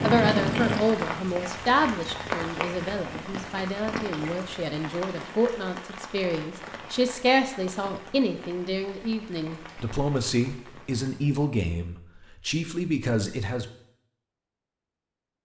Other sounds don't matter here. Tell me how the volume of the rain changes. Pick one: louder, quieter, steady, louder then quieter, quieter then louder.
quieter.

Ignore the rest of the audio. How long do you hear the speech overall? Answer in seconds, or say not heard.
14 s.